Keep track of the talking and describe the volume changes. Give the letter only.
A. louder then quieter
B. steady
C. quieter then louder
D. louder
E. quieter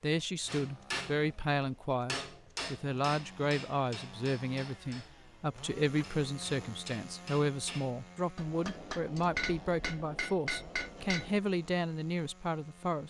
B.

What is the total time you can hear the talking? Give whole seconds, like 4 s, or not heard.
13 s.